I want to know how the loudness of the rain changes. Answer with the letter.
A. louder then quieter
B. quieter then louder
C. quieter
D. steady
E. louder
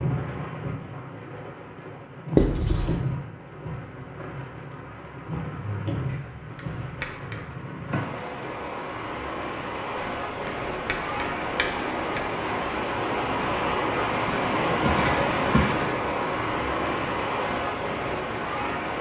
E.